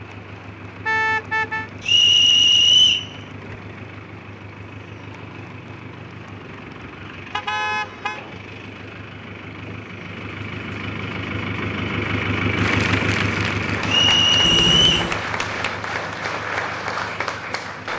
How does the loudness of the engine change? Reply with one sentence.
The volume of the engine goes up, then down.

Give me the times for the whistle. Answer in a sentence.
You can hear the whistle from 1.9 to 3.1 s and from 13.8 to 15.1 s.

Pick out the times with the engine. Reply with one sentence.
The engine can be heard from 0.0 to 17.9 s.